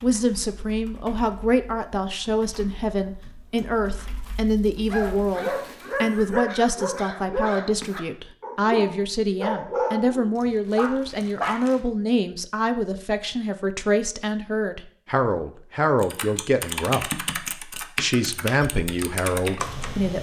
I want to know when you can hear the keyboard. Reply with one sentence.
You can hear the keyboard from 0.0 to 5.3 s and from 16.0 to 20.1 s.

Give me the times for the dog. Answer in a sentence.
You can hear the dog from 4.9 to 11.7 s.